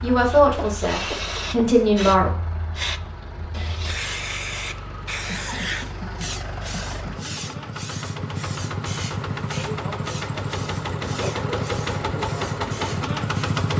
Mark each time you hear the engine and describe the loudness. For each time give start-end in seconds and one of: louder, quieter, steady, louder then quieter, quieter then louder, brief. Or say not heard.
0.0-13.7 louder.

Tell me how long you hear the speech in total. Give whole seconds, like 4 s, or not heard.
2 s.